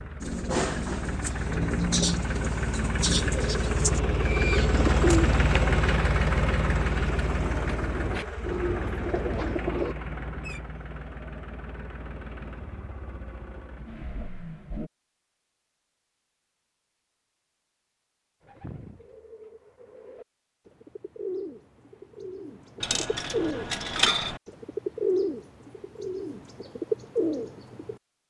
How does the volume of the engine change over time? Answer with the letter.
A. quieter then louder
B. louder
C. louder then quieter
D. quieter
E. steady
C.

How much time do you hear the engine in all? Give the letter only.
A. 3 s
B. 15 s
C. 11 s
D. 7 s
B.